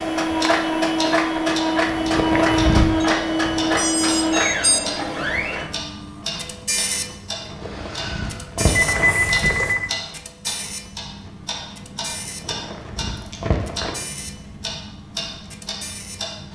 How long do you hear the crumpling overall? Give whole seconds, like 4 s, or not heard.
5 s.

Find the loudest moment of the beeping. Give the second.
9 s.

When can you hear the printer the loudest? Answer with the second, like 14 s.
3 s.